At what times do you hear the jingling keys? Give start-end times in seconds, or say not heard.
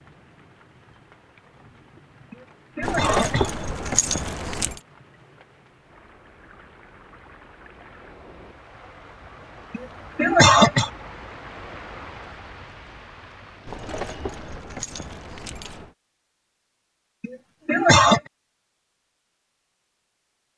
2.8-4.8, 13.7-15.9.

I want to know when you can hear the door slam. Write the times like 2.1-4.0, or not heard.
not heard.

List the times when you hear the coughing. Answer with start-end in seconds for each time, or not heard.
2.3-3.5, 9.7-10.9, 17.2-18.2.